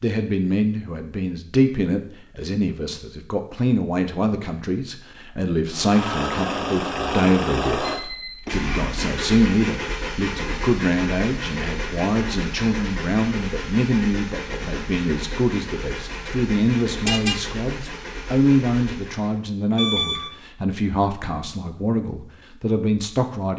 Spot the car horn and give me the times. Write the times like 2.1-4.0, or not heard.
17.1-17.9.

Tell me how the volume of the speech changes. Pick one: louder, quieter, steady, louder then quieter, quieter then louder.
steady.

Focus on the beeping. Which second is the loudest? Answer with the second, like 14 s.
20 s.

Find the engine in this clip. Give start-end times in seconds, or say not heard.
5.7-19.4.